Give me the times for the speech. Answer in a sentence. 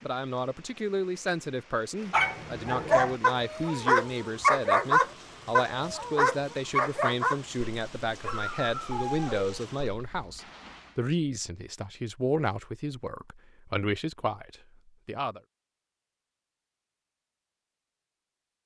The speech can be heard from 0.0 to 15.4 s.